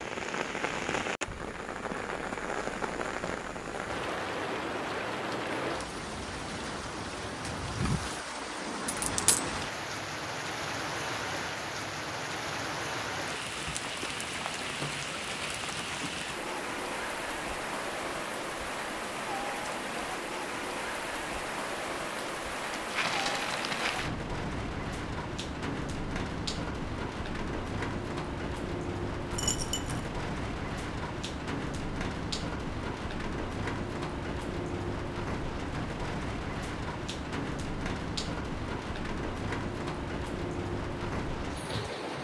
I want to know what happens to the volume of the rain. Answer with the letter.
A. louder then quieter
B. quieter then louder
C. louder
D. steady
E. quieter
D.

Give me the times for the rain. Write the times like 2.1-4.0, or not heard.
0.0-42.1.